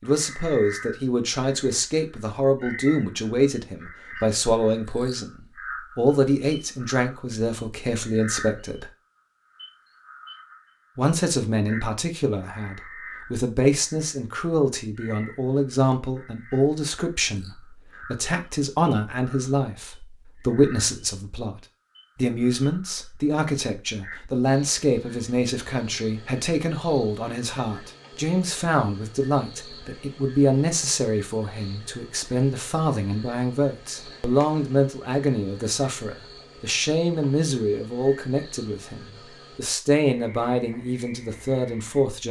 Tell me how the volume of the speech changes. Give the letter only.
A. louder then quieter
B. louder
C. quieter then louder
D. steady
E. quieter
D.